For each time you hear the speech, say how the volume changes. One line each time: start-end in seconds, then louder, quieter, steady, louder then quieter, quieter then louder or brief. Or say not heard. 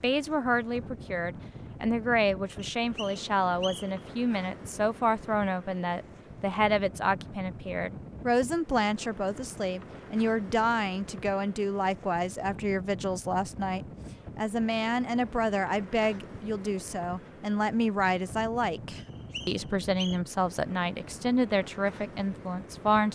0.0-23.0 steady.